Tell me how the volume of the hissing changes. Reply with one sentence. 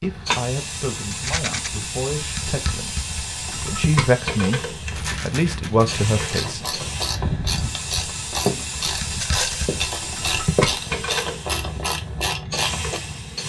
The volume of the hissing stays about the same.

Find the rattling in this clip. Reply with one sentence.
The rattling can be heard from 1.1 to 1.7 s, from 4.9 to 6.5 s and from 9.2 to 9.8 s.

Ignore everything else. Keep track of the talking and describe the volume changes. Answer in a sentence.
The loudness of the talking goes up.